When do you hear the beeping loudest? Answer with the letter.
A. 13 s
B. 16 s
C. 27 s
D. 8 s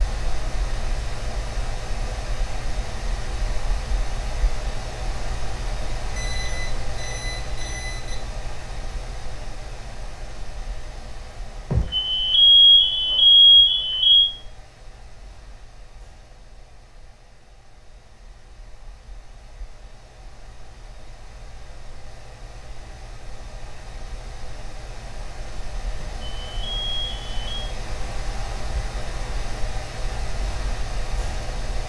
A.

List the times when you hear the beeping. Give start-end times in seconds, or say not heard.
6.2-8.2, 11.7-14.2, 25.9-27.6.